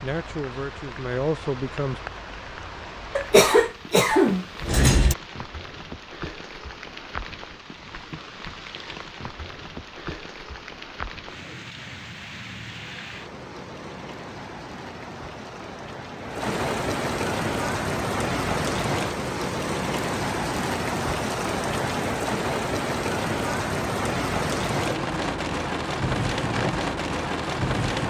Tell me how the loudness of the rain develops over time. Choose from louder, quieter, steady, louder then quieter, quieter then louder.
louder.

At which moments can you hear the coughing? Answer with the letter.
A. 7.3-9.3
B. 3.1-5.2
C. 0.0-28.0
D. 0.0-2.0
B.